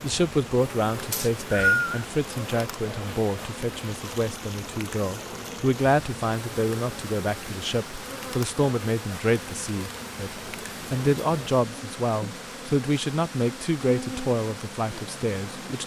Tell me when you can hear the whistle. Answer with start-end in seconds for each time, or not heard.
1.1-2.0.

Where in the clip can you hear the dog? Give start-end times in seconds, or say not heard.
not heard.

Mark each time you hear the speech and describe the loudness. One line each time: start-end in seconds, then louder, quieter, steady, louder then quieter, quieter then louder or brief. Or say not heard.
0.0-15.8 steady.